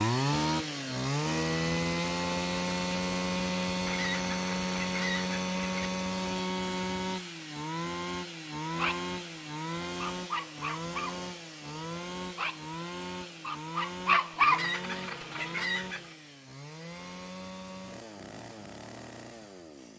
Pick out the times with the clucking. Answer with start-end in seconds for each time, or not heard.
3.9-5.9, 14.4-16.1.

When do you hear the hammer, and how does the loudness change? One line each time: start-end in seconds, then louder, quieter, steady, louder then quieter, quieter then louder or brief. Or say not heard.
not heard.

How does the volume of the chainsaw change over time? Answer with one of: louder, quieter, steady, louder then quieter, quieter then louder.
quieter.